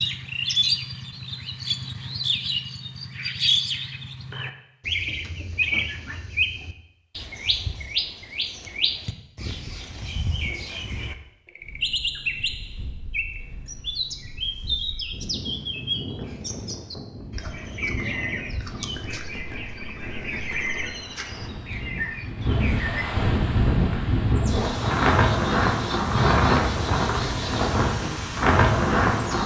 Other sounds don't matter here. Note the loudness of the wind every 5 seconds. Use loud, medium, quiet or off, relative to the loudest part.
off, off, quiet, quiet, medium, loud.